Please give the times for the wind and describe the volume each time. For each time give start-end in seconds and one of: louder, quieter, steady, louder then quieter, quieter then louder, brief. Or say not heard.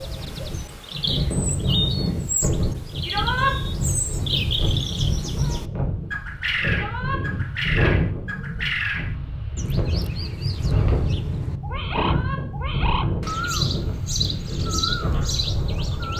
0.0-16.1 steady.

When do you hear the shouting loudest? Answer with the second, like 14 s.
3 s.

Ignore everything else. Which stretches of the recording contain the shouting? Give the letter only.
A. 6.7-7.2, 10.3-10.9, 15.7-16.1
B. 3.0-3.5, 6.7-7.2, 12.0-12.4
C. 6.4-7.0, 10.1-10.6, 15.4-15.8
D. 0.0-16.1
B.